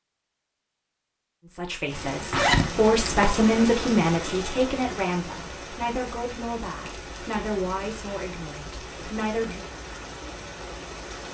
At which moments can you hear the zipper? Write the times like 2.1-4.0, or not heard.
2.3-3.2.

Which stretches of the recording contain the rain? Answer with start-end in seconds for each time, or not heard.
1.9-11.2.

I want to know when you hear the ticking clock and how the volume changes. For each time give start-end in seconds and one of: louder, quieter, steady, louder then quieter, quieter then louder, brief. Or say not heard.
not heard.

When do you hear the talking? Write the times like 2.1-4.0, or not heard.
1.4-9.7.